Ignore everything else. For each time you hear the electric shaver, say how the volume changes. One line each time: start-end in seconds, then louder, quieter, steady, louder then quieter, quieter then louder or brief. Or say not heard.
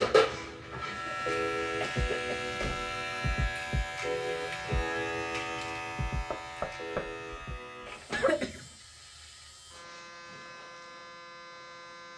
0.0-12.1 quieter.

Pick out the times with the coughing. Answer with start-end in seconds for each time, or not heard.
0.9-2.5, 8.1-8.7.